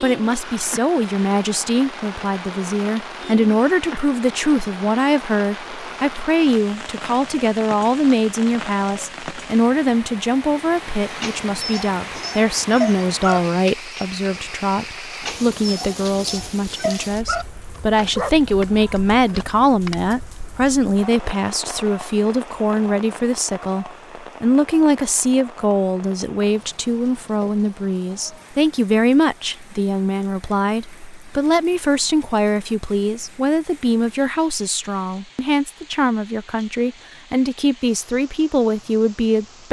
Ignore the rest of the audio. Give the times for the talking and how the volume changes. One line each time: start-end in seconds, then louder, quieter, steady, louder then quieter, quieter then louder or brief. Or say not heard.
0.0-39.6 steady.